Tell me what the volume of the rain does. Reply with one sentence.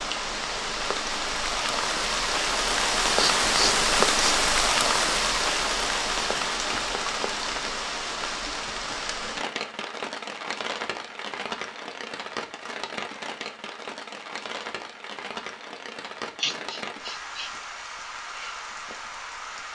The volume of the rain goes down.